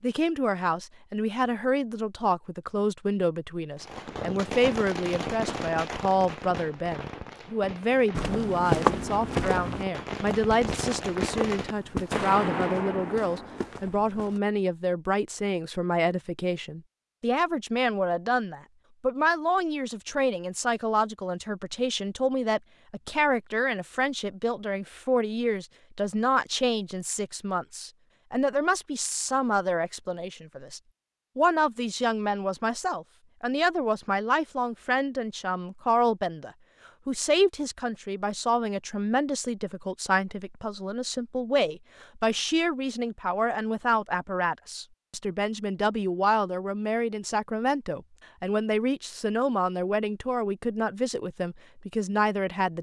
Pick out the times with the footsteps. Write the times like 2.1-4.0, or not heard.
8.1-14.4.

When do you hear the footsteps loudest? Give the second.
9 s.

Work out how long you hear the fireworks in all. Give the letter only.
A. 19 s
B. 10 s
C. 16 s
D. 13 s
B.